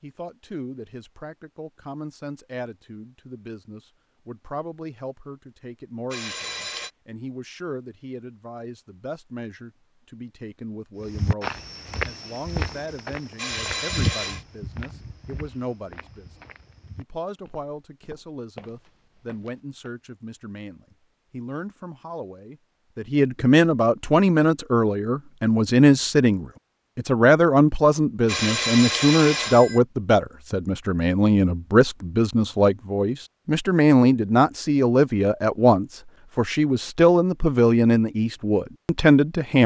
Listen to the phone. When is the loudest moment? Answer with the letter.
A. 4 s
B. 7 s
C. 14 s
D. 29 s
D.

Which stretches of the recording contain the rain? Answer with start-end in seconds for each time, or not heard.
not heard.